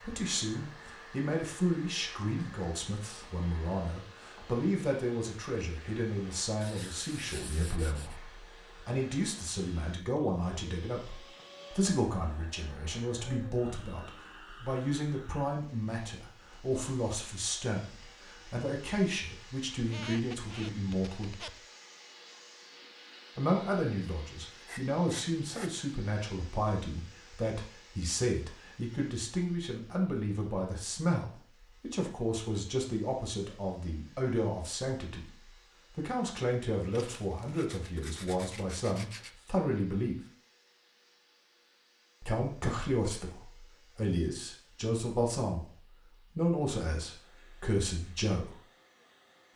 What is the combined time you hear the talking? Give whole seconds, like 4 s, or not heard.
43 s.